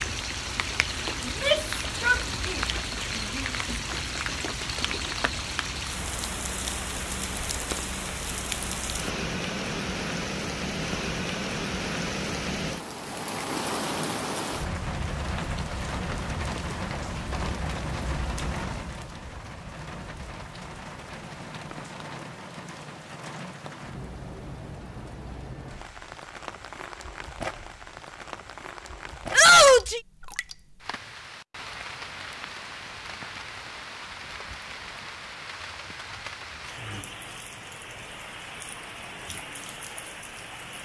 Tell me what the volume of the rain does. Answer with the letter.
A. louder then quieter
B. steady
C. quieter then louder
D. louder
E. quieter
E.